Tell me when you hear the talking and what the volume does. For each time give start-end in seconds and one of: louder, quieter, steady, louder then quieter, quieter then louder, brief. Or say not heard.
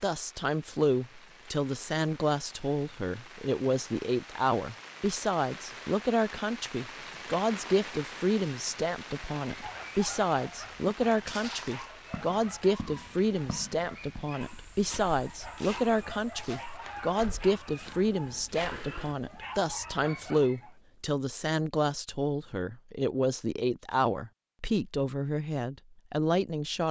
0.0-26.8 steady.